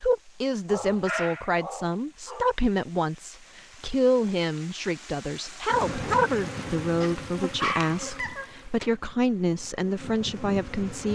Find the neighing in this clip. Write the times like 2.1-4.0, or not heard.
not heard.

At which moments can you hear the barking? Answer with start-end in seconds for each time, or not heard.
0.7-2.5, 7.0-8.6.